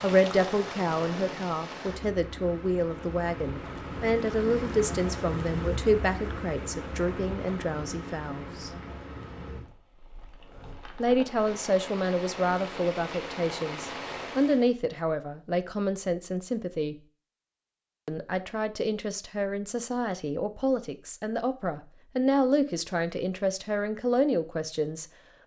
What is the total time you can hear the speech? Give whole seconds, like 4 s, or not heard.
22 s.